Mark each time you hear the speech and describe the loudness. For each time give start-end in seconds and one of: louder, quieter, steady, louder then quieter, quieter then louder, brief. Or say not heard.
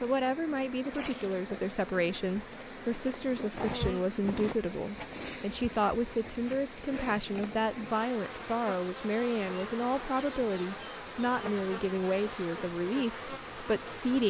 0.0-14.2 steady.